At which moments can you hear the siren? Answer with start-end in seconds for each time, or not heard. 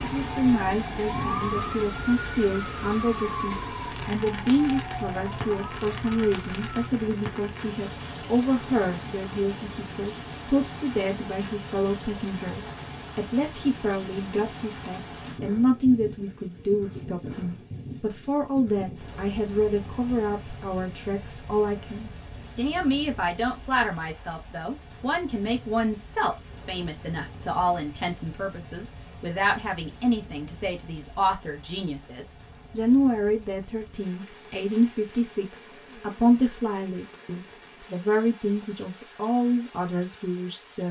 0.0-6.9.